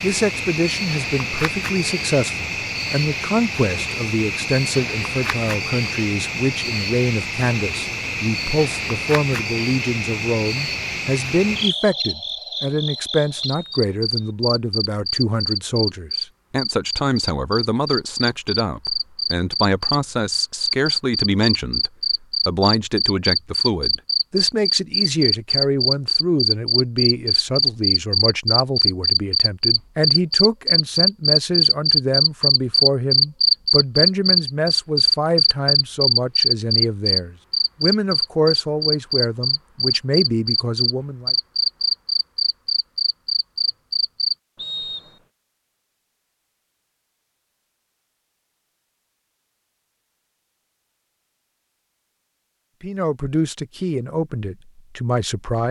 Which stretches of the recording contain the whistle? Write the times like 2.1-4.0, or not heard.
13.4-14.3, 44.5-45.2.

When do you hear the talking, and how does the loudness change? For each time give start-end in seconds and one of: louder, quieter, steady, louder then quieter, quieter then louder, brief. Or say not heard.
0.0-41.4 steady
52.8-55.6 brief.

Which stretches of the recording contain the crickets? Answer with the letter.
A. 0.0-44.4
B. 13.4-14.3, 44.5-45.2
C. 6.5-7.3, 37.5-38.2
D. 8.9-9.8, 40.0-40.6
A.